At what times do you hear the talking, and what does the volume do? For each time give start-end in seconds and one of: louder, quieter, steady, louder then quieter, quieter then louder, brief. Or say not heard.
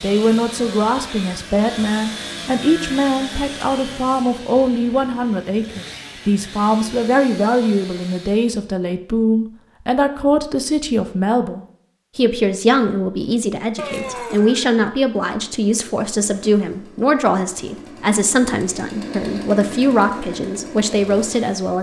0.0-21.7 steady.